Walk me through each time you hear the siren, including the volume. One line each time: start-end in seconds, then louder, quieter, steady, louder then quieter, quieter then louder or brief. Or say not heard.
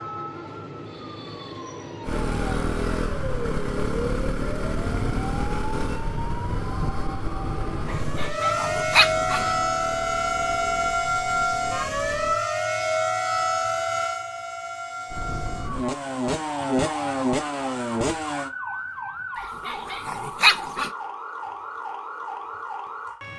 0.0-23.3 louder then quieter.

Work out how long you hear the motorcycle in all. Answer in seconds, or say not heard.
14 s.